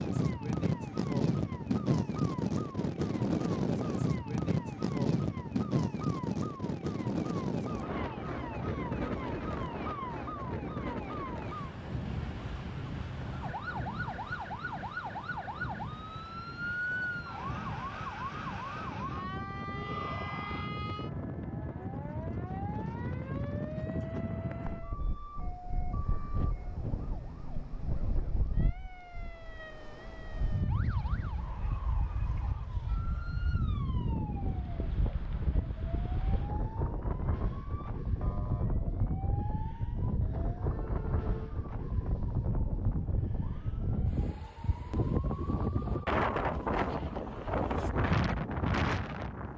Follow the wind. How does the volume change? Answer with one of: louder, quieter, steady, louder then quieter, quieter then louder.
quieter then louder.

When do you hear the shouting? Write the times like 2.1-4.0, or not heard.
19.7-20.7.